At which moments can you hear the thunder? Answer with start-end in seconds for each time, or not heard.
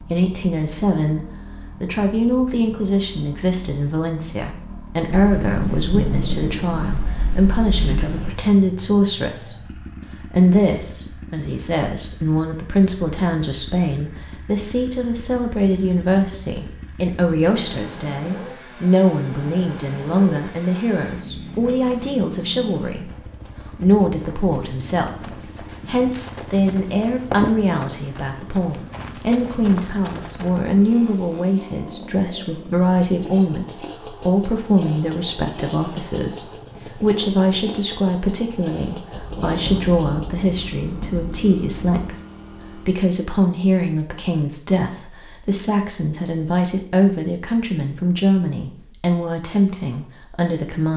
5.1-8.3, 39.1-42.0.